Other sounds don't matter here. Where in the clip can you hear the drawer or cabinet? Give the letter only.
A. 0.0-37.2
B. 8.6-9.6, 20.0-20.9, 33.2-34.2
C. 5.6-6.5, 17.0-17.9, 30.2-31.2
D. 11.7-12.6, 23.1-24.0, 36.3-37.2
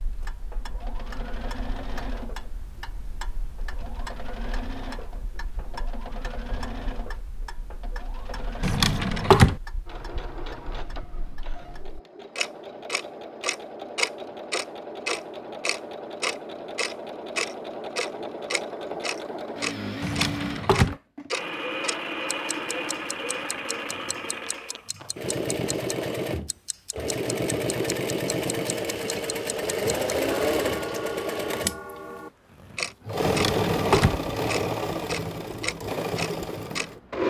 B.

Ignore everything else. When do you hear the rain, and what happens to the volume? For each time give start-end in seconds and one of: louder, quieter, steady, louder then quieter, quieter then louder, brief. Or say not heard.
not heard.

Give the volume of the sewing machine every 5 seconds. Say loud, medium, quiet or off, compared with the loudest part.
quiet, quiet, quiet, medium, medium, loud, loud, loud.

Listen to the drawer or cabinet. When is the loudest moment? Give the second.
9 s.